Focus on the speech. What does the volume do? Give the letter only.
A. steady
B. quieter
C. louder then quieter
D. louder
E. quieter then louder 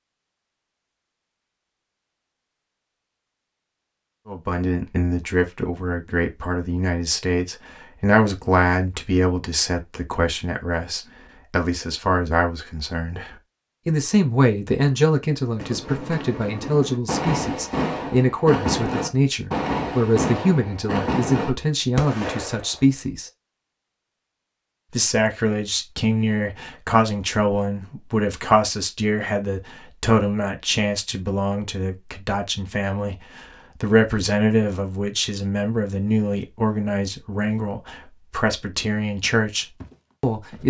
A.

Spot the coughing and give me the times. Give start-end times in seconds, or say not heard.
not heard.